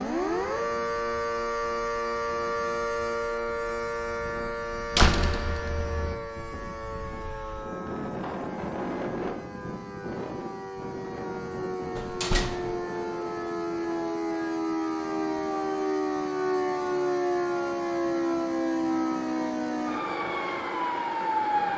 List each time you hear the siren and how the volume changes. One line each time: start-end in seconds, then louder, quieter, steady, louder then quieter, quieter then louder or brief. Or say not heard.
0.0-21.7 quieter then louder.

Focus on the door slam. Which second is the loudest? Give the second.
5 s.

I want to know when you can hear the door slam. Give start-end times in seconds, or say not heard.
5.0-6.2, 11.9-12.8.